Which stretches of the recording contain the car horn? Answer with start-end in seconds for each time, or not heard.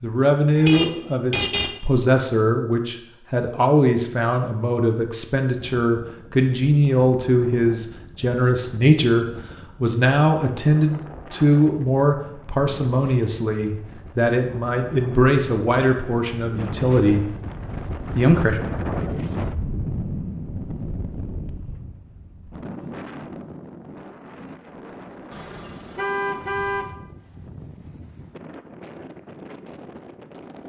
0.6-1.8, 25.3-26.9.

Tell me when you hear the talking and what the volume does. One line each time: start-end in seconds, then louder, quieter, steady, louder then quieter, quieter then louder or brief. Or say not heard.
0.0-17.3 steady
18.1-18.6 brief.